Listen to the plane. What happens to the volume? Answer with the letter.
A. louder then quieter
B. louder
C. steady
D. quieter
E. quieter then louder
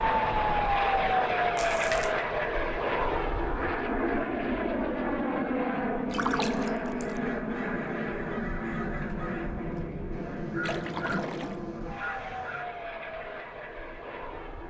D.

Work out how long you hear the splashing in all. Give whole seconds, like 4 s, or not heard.
3 s.